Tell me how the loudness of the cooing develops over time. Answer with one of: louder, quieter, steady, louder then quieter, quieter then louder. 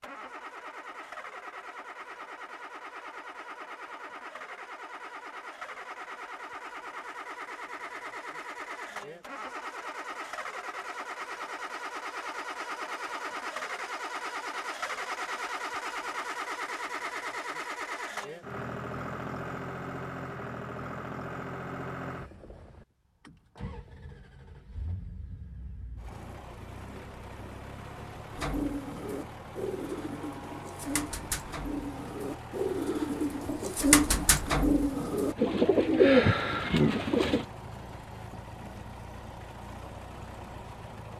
louder.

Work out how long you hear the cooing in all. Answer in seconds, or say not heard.
9 s.